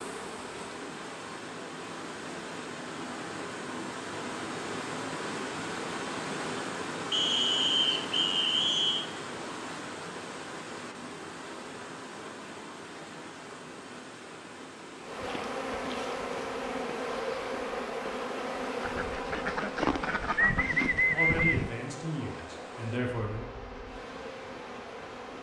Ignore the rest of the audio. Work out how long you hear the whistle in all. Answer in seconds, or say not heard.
2 s.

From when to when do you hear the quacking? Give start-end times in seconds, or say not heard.
18.8-21.8.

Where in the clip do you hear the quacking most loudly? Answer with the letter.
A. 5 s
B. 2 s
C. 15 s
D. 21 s
D.